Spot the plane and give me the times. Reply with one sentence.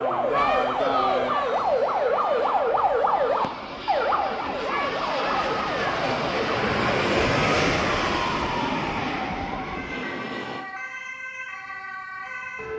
The plane can be heard from 0.0 to 10.7 s.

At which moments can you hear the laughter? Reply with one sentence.
The laughter can't be heard in this clip.